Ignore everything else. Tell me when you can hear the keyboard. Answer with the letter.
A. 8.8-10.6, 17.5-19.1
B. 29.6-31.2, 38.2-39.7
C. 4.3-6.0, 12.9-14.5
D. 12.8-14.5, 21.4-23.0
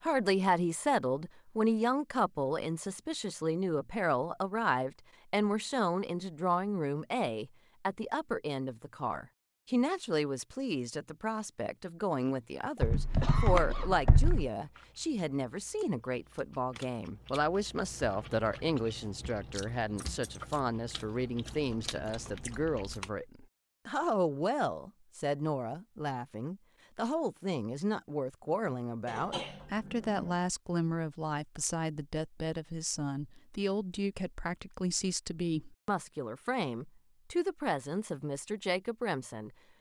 D.